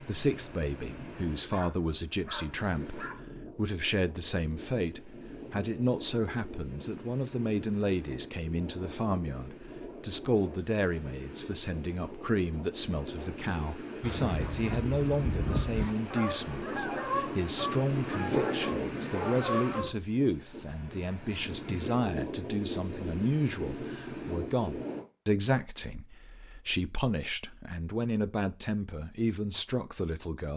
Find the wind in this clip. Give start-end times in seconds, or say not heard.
0.0-25.1.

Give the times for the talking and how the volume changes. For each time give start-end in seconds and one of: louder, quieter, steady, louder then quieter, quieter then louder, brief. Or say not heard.
0.0-30.5 steady.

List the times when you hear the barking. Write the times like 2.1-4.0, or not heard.
1.5-3.2, 18.2-19.4.